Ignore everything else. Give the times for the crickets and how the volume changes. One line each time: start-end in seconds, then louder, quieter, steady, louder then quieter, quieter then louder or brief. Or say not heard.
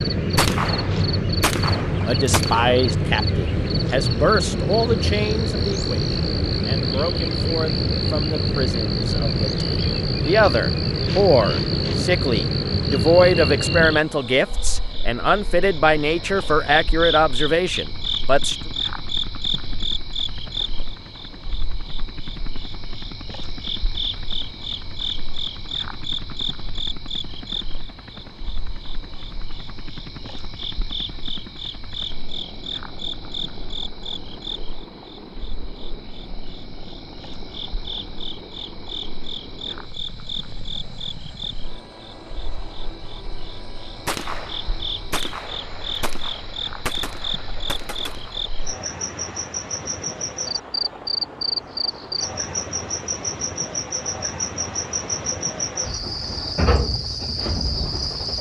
0.0-58.3 quieter then louder.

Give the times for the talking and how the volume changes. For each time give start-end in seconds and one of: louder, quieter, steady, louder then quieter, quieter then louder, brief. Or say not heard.
2.0-18.6 quieter then louder.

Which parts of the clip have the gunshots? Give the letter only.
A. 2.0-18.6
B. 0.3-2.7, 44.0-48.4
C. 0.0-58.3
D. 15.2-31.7
B.